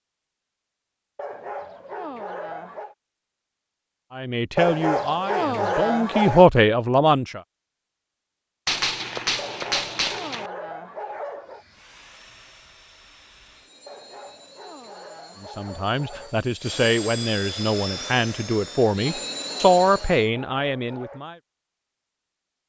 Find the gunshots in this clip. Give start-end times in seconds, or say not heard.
8.7-10.5.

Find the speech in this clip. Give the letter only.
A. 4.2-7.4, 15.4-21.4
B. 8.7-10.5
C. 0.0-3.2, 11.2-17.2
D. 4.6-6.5
A.